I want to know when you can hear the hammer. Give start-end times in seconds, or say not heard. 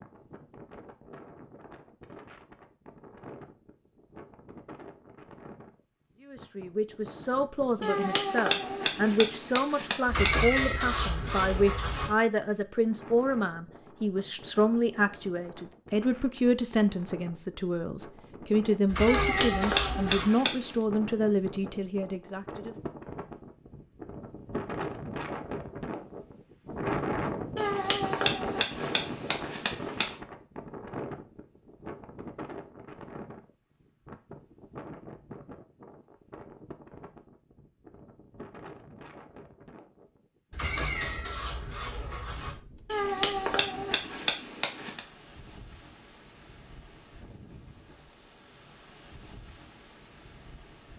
7.8-10.3, 19.1-20.8, 27.6-30.1, 42.9-45.0.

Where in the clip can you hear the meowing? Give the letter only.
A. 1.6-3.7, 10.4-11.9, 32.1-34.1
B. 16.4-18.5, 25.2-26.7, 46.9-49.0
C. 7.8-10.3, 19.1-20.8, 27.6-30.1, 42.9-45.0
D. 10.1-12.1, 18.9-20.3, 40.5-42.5
D.